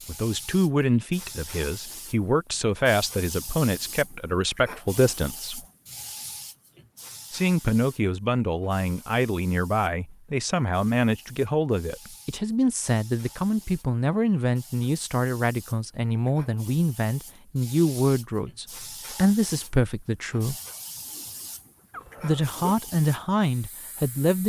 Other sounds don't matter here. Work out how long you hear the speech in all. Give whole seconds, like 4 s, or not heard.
21 s.